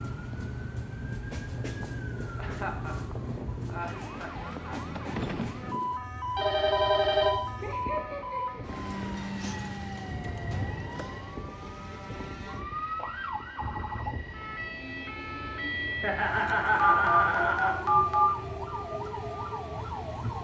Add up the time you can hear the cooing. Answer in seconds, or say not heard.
not heard.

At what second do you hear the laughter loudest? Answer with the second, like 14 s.
17 s.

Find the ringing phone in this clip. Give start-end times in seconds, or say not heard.
6.3-7.3, 16.8-18.3.